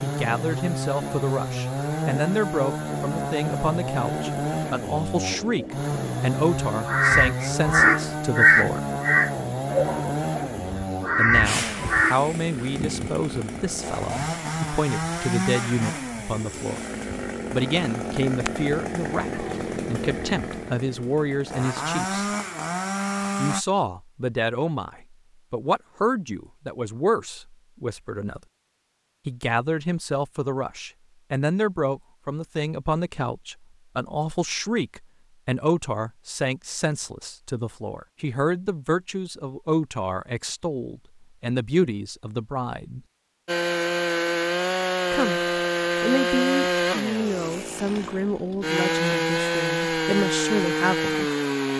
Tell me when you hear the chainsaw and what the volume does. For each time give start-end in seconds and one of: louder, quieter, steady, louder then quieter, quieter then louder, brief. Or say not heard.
0.0-23.6 steady
43.5-51.7 quieter then louder.